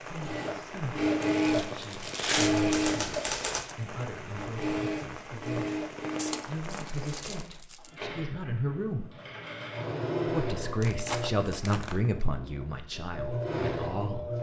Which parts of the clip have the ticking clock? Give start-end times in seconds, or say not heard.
not heard.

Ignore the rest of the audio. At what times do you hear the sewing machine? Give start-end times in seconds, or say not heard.
0.1-14.3.